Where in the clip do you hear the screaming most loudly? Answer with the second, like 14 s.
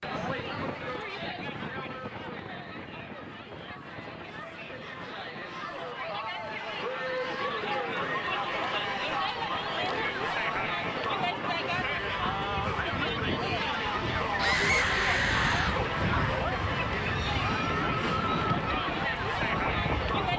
15 s.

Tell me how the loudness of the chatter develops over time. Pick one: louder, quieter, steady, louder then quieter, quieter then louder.
louder.